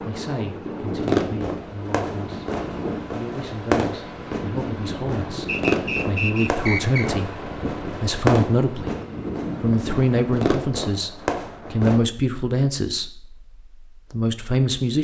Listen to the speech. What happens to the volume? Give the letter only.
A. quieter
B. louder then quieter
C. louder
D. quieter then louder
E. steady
C.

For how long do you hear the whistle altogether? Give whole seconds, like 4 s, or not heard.
2 s.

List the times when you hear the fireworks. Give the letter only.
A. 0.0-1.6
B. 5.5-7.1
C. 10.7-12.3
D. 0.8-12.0
D.